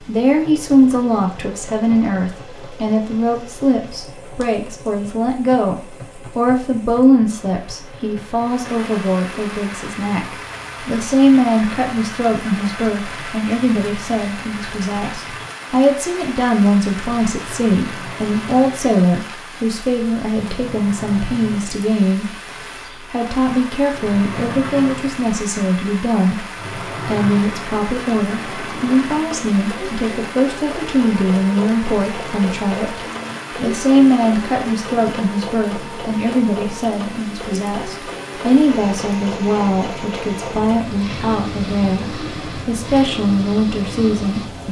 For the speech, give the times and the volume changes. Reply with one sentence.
The speech can be heard from 0.1 to 22.3 s, at a steady volume; and from 23.1 to 44.6 s, at a steady volume.